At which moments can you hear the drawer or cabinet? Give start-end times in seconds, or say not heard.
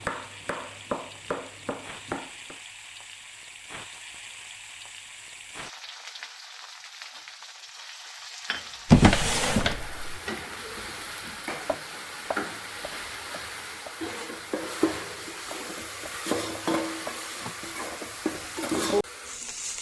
8.9-9.9.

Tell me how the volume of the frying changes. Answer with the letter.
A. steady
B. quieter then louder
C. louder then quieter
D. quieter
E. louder
E.